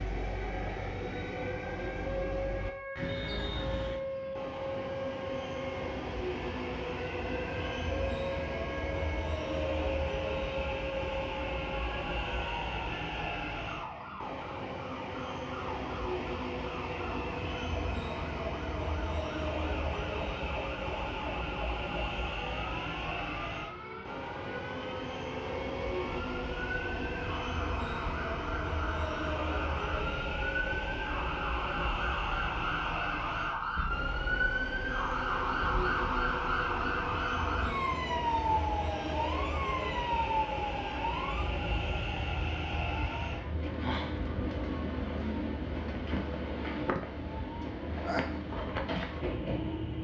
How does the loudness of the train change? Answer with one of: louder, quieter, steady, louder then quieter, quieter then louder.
steady.